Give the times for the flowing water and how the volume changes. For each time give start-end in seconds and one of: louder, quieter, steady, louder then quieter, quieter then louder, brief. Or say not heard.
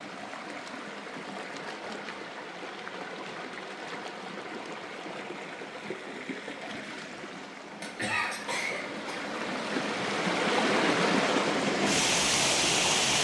0.0-13.1 louder.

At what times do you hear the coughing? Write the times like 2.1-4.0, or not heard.
7.8-9.3.